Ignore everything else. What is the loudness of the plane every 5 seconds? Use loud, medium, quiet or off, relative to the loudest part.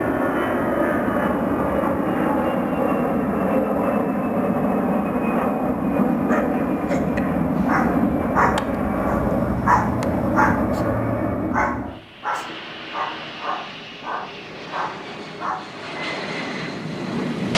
loud, loud, medium, medium.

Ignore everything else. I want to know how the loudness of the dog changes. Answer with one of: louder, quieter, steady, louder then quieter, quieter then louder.
louder then quieter.